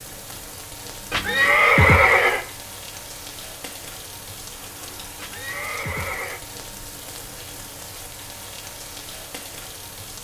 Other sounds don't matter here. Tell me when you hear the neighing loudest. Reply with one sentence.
The loudest moment of the neighing is at 2 seconds.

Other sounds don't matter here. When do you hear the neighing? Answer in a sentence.
You can hear the neighing from 1.1 to 2.5 s and from 5.2 to 6.4 s.